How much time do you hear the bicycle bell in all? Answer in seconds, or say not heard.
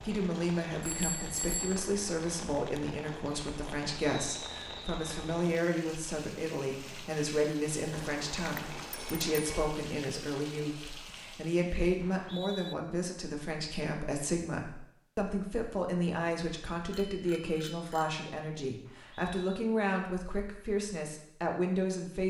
4 s.